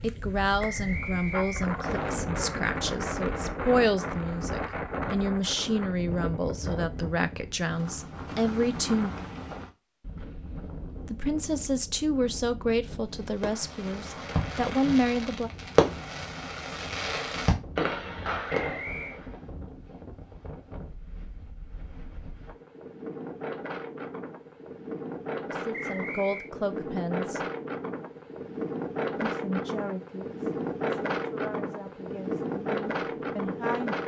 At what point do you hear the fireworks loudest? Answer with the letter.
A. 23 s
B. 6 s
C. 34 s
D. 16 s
D.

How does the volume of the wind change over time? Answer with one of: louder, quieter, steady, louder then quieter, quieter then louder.
quieter then louder.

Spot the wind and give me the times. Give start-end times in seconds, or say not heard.
0.0-34.0.